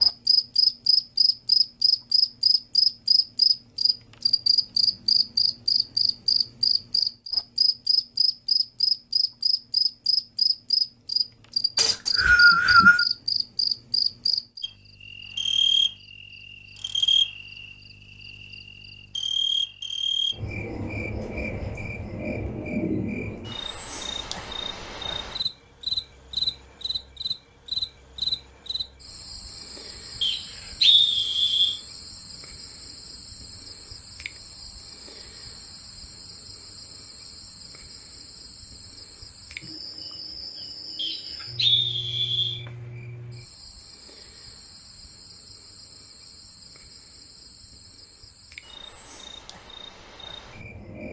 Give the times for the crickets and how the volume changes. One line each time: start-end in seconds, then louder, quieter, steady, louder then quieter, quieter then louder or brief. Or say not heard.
0.0-51.0 quieter.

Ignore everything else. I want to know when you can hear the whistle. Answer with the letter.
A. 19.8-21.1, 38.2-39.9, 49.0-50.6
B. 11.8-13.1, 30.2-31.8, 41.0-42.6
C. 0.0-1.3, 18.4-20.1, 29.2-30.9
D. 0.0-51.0
B.